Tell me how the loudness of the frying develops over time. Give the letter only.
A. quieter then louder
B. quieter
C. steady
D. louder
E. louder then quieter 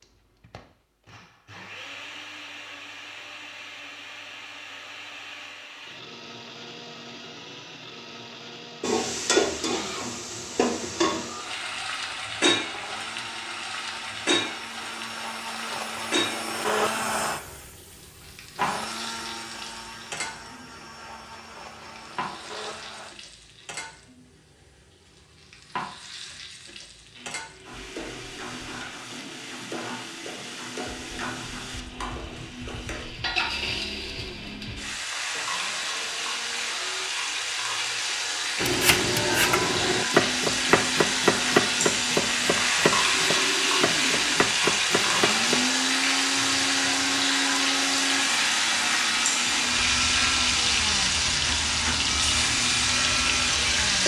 A.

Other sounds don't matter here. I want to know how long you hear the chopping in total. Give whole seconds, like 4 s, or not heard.
7 s.